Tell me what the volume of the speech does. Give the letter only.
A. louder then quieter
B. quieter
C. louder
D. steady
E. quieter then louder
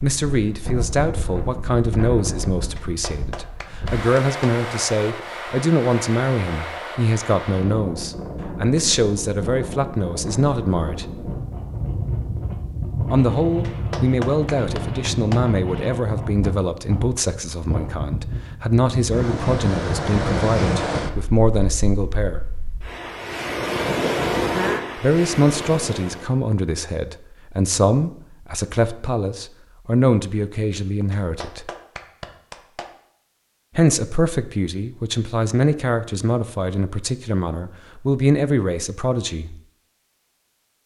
D.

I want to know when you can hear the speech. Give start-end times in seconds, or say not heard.
0.0-11.1, 13.1-22.5, 24.9-31.7, 33.8-39.6.